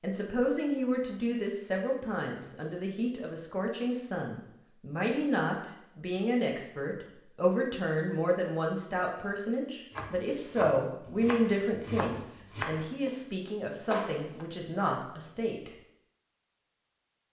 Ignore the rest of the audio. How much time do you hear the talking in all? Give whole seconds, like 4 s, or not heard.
16 s.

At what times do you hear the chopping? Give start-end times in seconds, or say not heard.
9.9-14.4.